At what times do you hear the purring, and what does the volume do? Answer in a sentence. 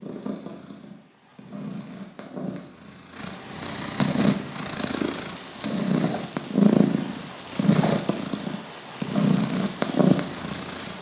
You can hear the purring from 0.0 to 10.9 s, getting louder.